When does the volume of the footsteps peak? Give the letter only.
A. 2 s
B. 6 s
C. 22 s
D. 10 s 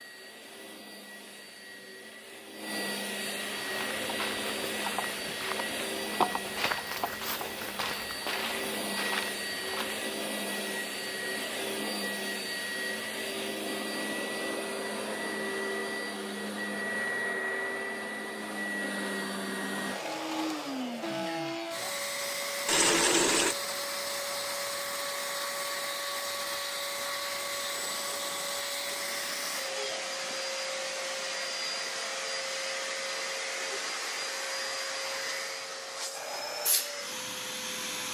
B.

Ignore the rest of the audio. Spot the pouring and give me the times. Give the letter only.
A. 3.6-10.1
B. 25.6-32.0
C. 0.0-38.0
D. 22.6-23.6
D.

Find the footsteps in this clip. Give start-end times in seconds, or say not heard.
3.6-10.1.